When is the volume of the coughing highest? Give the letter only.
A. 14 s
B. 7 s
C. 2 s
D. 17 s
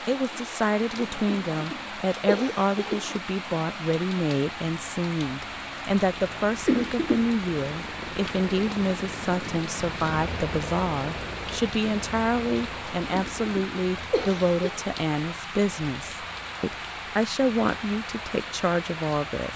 B.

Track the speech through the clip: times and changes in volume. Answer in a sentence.
The speech can be heard from 0.1 to 19.5 s, at a steady volume.